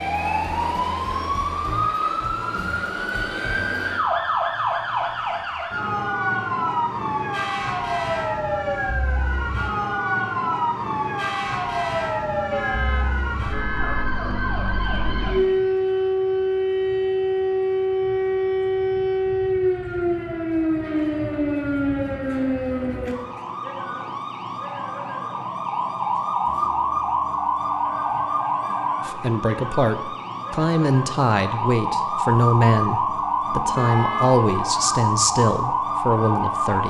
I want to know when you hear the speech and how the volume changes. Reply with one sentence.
You can hear the speech from 29.1 to 36.8 s, at a steady volume.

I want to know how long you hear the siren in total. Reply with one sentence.
You can hear the siren for 37 seconds altogether.